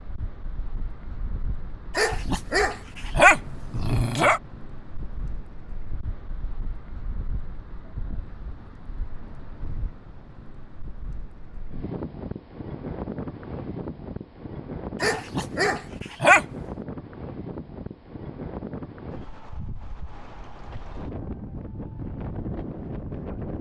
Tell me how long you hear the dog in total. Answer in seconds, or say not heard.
4 s.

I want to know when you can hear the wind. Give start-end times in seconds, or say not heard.
0.0-23.5.